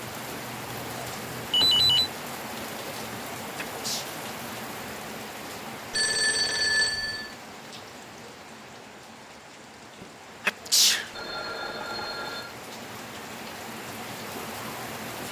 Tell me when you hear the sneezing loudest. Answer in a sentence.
The volume of the sneezing peaks at 11 seconds.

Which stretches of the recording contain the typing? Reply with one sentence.
You can't hear the typing here.